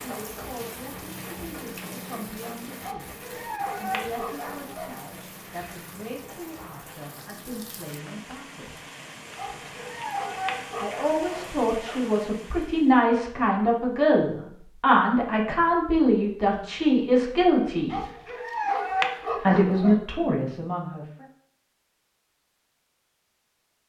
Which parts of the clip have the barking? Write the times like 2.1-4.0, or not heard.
2.8-4.9, 9.3-12.1, 17.9-19.9.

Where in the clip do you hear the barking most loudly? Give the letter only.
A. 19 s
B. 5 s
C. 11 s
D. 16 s
A.